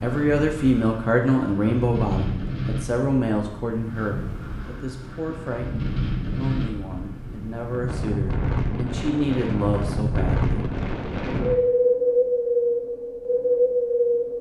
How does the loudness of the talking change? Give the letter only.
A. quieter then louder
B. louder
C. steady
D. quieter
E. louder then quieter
A.